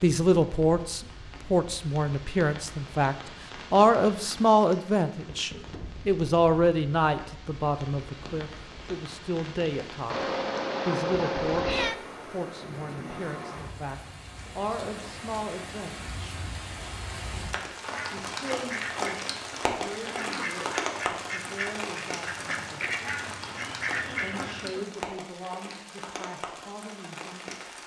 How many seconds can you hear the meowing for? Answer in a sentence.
You can hear the meowing for 2 seconds altogether.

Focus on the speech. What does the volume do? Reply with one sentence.
The volume of the speech goes down.